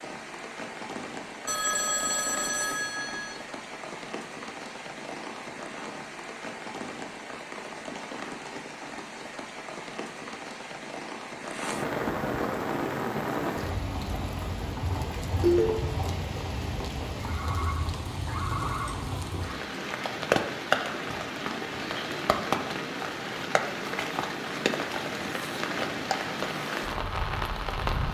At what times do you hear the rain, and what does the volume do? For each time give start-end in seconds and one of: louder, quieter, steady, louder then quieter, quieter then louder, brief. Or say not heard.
0.0-28.0 louder.